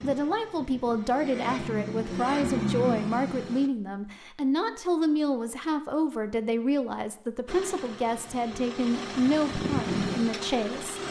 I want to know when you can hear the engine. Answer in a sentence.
You can hear the engine from 0.0 to 3.7 s and from 7.5 to 11.0 s.